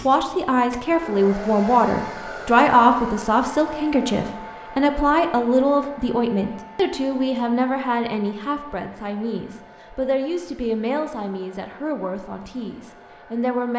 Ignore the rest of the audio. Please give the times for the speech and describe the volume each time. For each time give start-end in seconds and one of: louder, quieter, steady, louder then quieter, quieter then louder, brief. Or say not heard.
0.0-13.7 quieter.